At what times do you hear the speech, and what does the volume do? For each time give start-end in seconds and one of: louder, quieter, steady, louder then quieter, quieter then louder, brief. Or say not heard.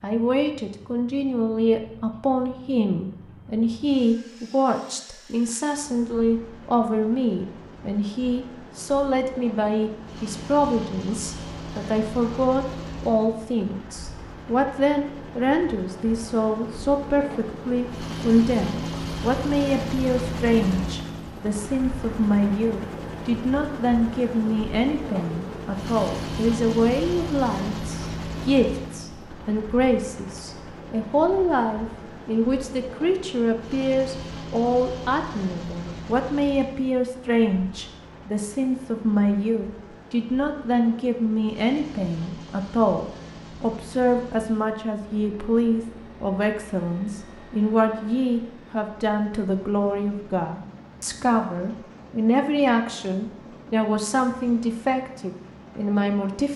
0.0-56.5 steady.